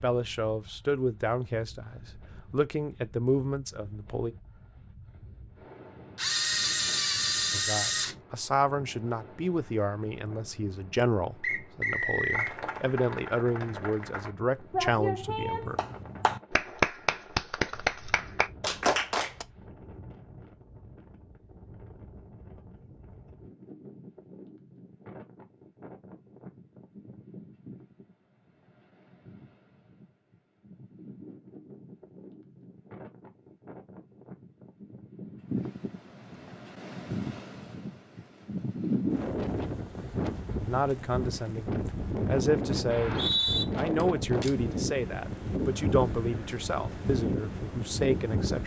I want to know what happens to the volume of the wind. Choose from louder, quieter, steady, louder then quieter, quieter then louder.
louder.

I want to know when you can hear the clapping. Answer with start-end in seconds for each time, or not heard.
12.3-19.4.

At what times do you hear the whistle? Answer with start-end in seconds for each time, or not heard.
11.4-12.6, 42.9-43.6.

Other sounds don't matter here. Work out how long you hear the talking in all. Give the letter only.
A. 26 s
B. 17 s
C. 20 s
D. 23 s
C.